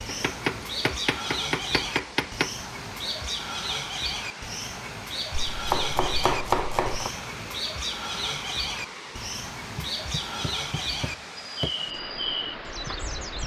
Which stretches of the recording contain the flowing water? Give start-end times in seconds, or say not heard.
0.0-13.4.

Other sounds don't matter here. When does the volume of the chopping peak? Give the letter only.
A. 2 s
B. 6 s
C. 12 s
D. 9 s
B.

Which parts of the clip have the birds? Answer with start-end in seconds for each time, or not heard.
0.0-13.4.